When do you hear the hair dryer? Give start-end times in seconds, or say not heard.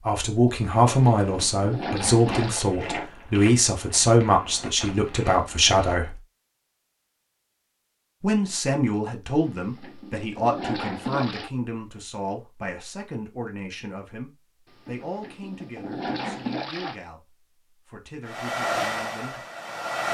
18.2-20.0.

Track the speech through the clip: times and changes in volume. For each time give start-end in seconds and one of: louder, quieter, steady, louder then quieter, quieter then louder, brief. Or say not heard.
0.1-6.2 steady
8.2-19.4 quieter.